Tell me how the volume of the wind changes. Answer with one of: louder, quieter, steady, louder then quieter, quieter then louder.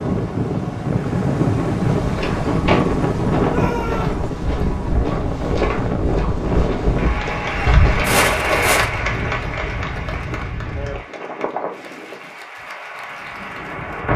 quieter.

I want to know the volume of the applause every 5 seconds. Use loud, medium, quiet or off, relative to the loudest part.
off, loud, quiet.